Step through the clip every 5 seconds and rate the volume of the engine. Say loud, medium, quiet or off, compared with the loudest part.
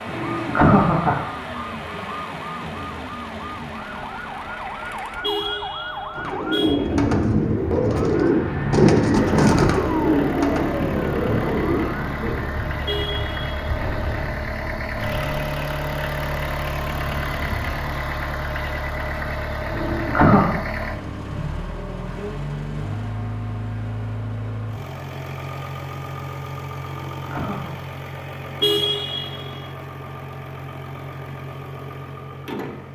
medium, loud, loud, loud, loud, medium, medium.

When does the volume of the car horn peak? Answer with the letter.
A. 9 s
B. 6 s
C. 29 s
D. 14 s
C.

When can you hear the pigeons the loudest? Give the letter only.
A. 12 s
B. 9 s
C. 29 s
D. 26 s
B.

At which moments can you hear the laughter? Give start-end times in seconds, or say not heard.
0.1-1.1, 19.6-20.4, 26.8-27.8.